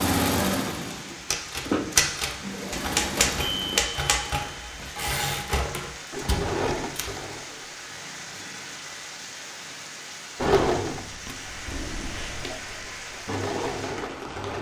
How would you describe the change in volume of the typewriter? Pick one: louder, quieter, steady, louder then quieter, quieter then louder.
quieter.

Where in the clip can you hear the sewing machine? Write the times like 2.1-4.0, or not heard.
0.0-3.8, 6.1-7.8, 10.3-14.5.